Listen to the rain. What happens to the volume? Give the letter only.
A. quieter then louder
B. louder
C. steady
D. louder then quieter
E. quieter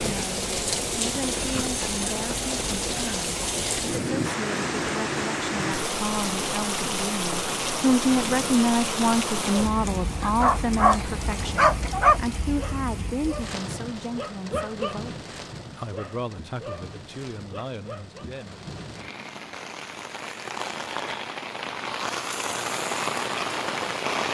A.